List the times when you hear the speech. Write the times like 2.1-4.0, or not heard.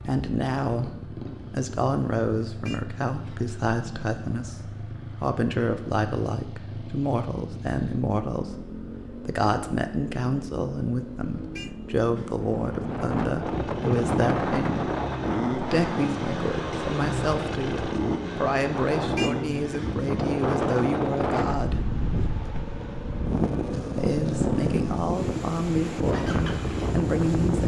0.1-21.9, 23.9-27.6.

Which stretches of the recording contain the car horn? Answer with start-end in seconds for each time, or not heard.
2.6-3.5, 11.6-12.3, 19.1-19.9.